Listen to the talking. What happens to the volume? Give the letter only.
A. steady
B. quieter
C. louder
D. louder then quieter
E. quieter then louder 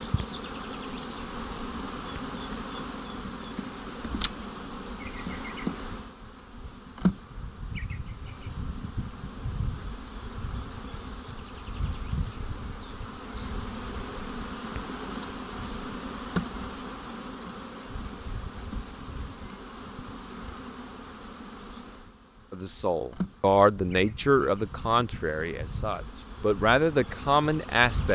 E.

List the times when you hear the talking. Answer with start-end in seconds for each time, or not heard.
22.5-28.0.